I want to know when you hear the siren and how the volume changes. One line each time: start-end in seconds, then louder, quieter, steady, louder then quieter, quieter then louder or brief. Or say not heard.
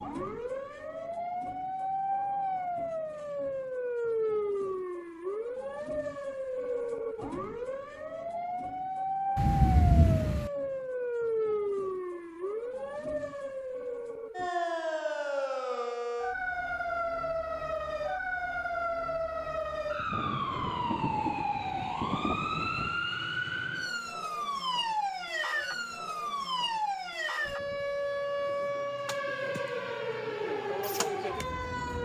0.0-31.9 steady.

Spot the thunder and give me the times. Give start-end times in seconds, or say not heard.
9.3-10.5, 19.9-23.1.